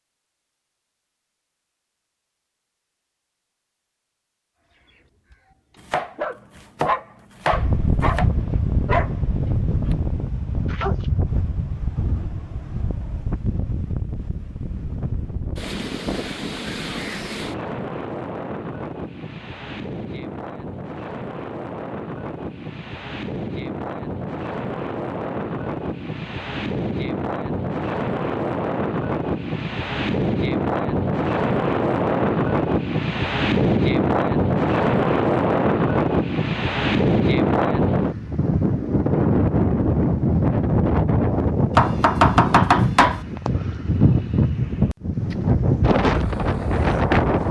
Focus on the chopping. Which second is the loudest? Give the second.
42 s.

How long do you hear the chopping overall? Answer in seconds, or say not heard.
4 s.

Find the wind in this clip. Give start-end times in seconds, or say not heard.
7.5-47.4.